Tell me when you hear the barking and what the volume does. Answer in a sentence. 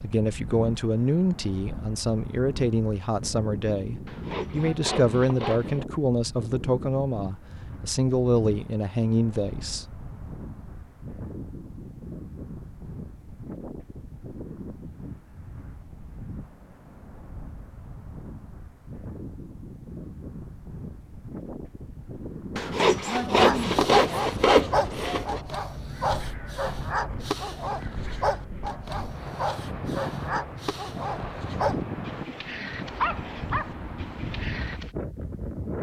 The barking can be heard from 23.4 to 34.9 s, at a steady volume.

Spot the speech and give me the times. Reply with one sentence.
You can hear the speech from 0.0 to 10.1 s.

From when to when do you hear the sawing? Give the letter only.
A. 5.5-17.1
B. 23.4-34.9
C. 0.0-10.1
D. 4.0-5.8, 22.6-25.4
D.